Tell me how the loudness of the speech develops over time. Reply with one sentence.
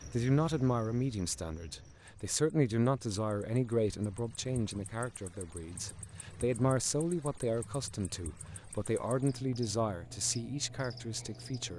The volume of the speech stays about the same.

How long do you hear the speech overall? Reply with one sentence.
The speech can be heard for 12 seconds in total.